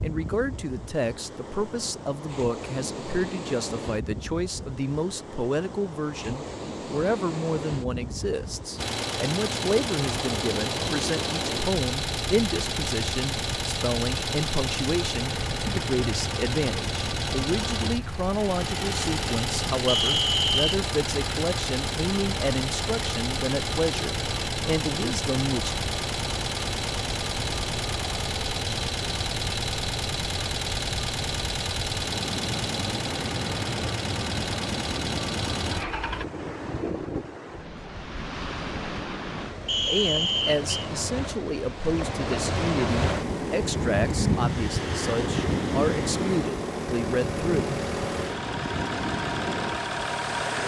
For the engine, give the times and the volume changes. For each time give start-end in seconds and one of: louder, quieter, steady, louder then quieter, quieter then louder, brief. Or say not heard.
8.8-36.2 steady
43.0-50.6 louder.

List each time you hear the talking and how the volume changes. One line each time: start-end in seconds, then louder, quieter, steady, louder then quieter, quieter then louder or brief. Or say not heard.
0.0-25.8 steady
39.9-47.8 steady.